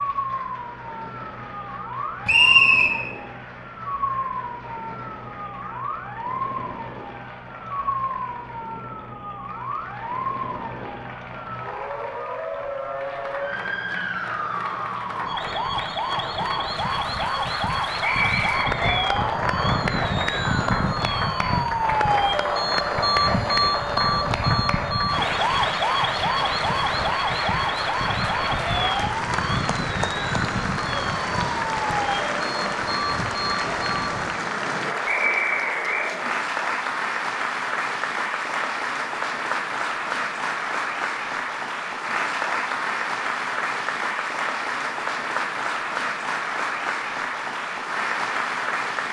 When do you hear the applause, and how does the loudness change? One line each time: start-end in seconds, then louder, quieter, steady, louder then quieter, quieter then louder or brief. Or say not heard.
0.0-49.0 louder.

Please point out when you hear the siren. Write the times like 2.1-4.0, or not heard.
0.0-34.4.